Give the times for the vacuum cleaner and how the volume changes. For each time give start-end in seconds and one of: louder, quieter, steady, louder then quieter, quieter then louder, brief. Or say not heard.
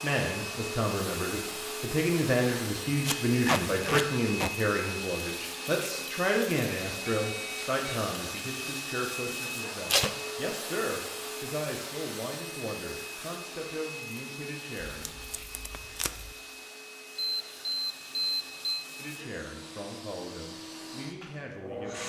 0.0-22.0 quieter.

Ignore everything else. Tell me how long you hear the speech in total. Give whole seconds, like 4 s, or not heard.
18 s.